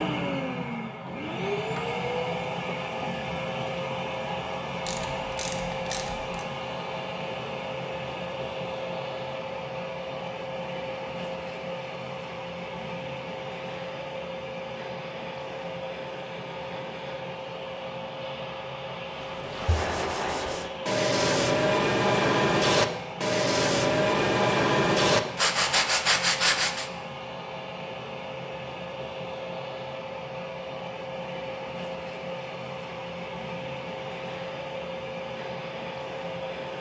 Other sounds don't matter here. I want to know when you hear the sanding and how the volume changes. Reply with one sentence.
You can hear the sanding from 19.2 to 26.9 s, getting louder.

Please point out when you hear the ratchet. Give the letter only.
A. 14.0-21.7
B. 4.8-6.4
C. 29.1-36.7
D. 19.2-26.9
B.